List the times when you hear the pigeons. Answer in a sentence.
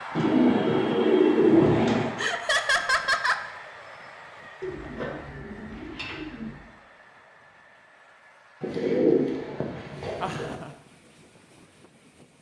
The pigeons can be heard from 0.1 to 2.1 s, from 4.6 to 6.6 s and from 8.6 to 10.4 s.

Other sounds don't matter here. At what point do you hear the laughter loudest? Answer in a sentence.
The volume of the laughter peaks at 3 seconds.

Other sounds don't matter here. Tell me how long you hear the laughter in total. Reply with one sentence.
The laughter can be heard for 2 seconds in total.